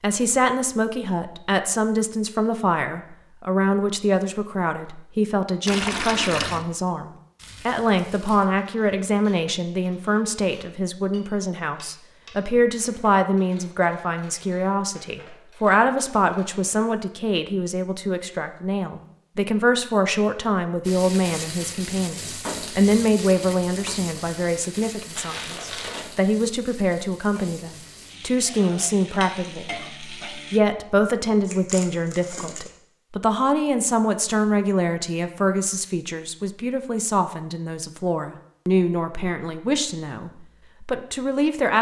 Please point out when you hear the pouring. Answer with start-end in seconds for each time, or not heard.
5.7-6.7.